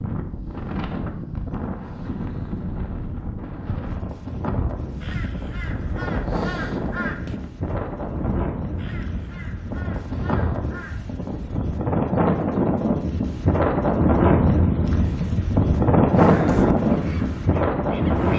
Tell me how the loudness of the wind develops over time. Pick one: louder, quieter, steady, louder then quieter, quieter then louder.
louder.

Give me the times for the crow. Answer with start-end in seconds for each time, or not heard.
4.5-11.1, 16.1-18.3.